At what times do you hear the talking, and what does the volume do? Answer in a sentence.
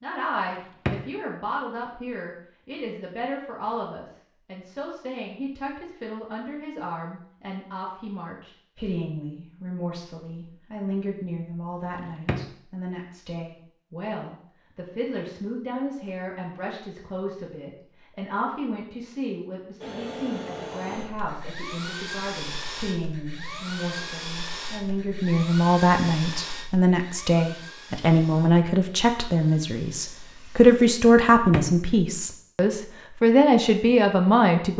The talking can be heard from 0.0 to 34.7 s, getting louder.